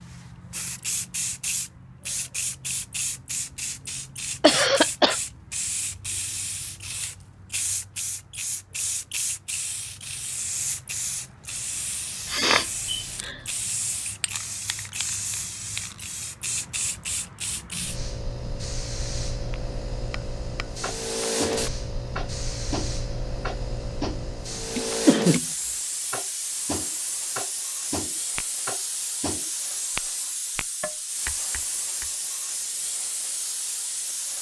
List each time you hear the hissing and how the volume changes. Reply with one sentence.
The hissing can be heard from 0.0 to 34.3 s, at a steady volume.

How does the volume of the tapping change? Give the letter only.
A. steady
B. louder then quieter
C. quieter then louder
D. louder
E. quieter
A.